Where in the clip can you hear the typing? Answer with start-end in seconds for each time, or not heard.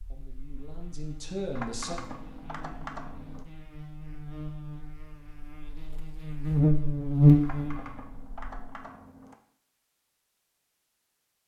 1.6-3.5, 7.4-9.3.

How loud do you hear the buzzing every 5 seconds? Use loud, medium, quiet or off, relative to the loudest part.
quiet, loud, off.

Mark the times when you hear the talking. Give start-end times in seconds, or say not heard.
0.1-2.0.